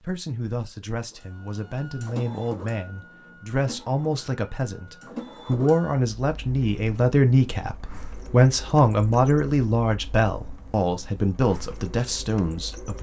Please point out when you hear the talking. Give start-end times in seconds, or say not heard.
0.0-12.9.